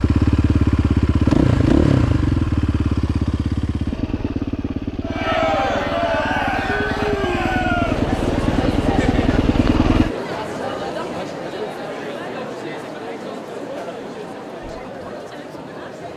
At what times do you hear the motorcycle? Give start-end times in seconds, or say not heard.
0.0-10.2.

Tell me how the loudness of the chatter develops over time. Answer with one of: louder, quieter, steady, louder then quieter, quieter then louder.
quieter.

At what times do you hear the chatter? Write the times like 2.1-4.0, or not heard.
5.0-16.1.